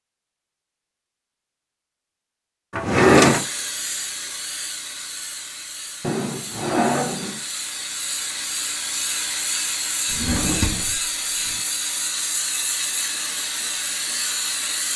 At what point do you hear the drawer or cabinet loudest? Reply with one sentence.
The volume of the drawer or cabinet peaks at 3 seconds.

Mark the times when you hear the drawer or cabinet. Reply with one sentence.
The drawer or cabinet can be heard from 2.7 to 3.5 s, from 6.0 to 7.4 s and from 10.1 to 11.6 s.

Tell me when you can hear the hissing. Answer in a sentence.
You can hear the hissing from 3.1 to 14.9 s.